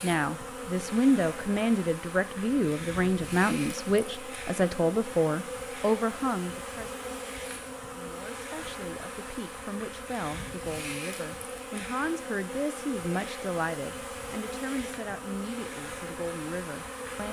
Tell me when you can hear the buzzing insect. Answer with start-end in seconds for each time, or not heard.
0.0-17.2.